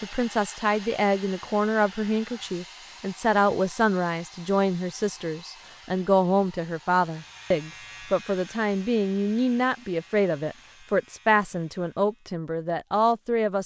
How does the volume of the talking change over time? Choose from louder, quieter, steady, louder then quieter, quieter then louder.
steady.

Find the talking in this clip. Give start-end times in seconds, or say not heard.
0.0-13.6.